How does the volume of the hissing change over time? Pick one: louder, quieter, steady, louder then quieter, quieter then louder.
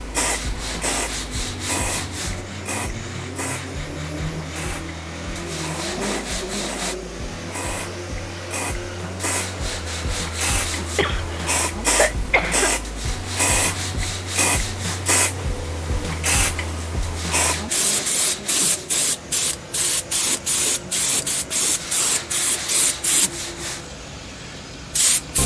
louder.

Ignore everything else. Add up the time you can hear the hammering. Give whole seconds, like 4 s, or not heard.
not heard.